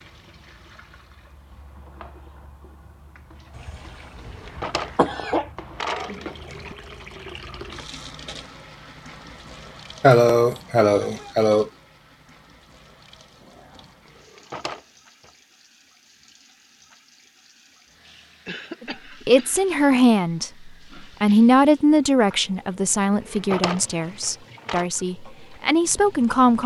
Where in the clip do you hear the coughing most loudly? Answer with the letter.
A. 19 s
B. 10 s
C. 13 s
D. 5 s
B.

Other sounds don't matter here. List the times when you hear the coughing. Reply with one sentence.
The coughing can be heard from 3.5 to 5.5 s, from 10.0 to 11.7 s and from 18.4 to 19.6 s.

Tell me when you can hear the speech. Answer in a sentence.
You can hear the speech from 18.8 to 26.6 s.